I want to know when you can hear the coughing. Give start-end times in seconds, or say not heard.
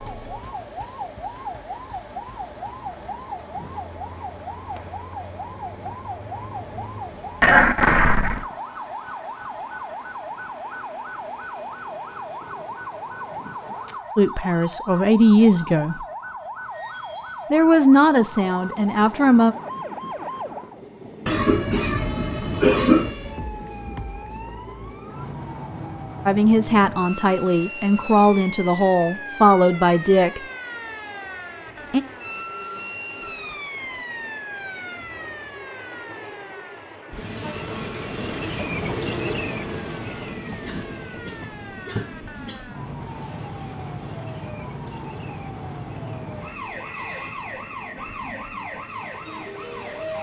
7.4-8.4, 21.2-23.1, 40.6-42.6.